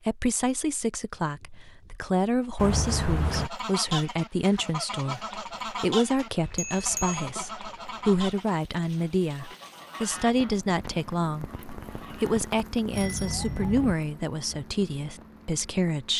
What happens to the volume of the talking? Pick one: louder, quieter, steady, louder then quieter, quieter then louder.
steady.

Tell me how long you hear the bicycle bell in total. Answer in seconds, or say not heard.
3 s.